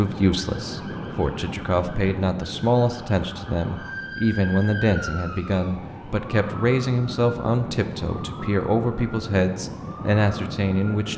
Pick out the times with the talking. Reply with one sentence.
The talking can be heard from 0.0 to 11.1 s.